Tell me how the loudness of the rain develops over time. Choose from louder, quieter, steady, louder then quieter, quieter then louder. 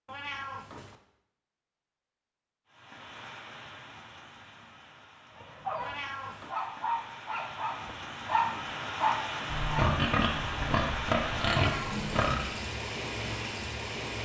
louder.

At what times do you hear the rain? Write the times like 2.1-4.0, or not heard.
2.6-14.2.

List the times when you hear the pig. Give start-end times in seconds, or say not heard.
9.5-12.4.